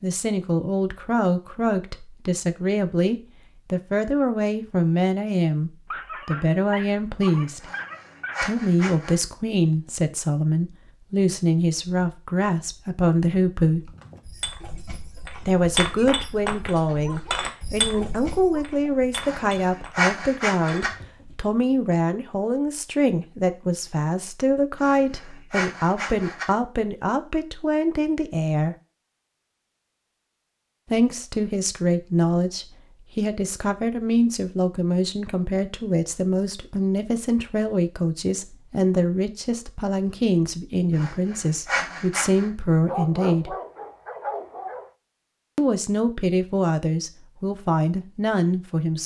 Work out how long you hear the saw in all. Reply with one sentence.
You can hear the saw for 7 seconds altogether.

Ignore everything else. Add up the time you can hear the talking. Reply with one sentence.
You can hear the talking for 43 seconds altogether.